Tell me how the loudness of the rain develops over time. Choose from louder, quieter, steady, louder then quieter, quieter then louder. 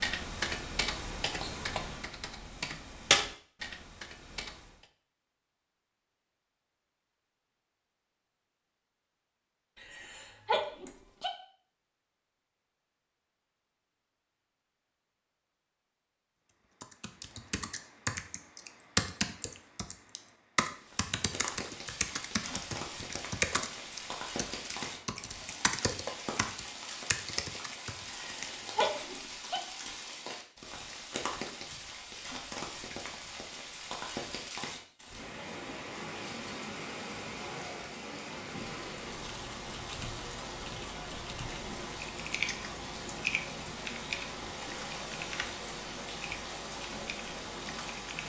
steady.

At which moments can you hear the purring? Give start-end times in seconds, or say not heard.
not heard.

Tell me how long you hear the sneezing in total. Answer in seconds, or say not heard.
3 s.